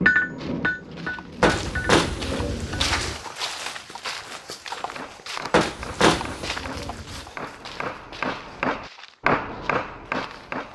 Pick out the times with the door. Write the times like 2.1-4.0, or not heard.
1.4-3.1, 5.5-6.5.